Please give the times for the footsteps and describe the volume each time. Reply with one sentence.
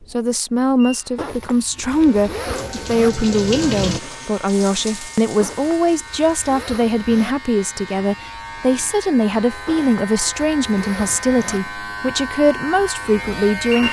You can't hear the footsteps here.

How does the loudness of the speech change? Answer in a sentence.
The loudness of the speech stays about the same.